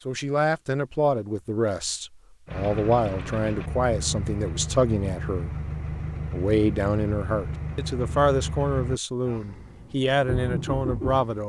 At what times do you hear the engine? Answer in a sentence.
The engine can be heard from 2.5 to 11.4 s.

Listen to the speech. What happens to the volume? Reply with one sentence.
The loudness of the speech stays about the same.